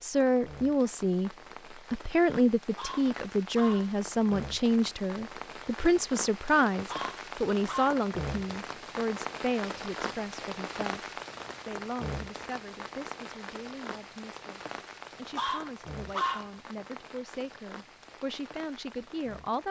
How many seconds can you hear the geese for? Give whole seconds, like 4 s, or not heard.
not heard.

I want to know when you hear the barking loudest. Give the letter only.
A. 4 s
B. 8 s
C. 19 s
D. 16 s
D.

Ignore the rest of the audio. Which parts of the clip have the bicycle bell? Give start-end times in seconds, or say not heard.
not heard.